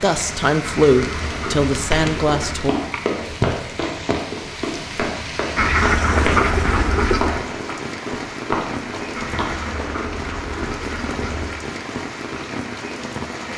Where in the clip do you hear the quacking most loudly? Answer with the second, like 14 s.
6 s.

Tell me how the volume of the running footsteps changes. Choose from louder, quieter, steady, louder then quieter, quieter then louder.
steady.